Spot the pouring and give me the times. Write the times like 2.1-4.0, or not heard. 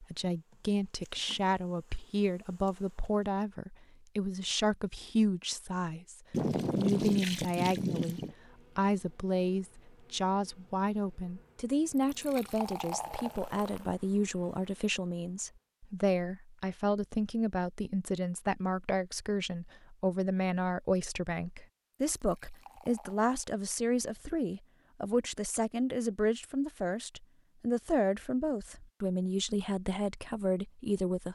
6.3-8.3, 11.8-13.8, 22.1-23.3.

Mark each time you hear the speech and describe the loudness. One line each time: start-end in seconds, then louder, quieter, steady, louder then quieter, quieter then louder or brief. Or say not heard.
0.0-31.3 steady.